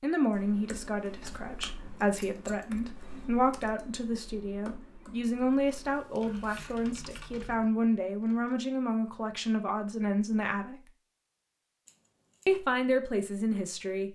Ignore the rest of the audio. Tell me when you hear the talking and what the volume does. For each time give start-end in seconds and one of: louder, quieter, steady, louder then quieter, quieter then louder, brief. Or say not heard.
0.0-10.9 steady
12.4-14.1 brief.